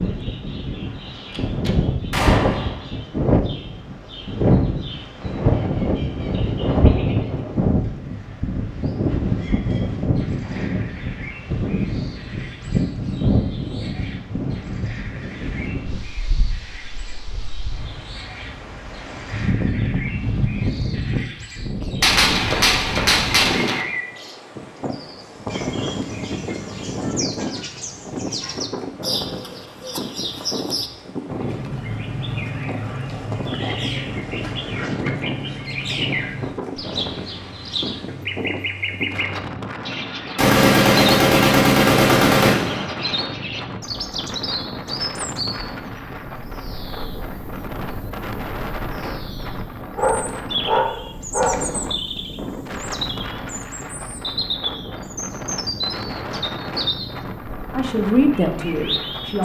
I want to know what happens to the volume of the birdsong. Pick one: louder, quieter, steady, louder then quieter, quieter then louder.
louder.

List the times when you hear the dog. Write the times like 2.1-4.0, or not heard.
50.0-51.7.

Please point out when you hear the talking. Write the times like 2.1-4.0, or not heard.
57.7-59.3.